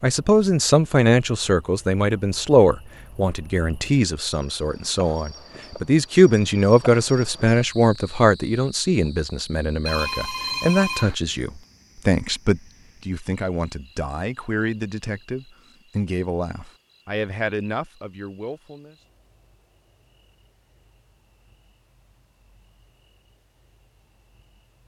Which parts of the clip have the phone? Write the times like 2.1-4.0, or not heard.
9.8-11.2.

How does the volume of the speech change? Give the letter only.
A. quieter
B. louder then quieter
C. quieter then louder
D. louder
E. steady
A.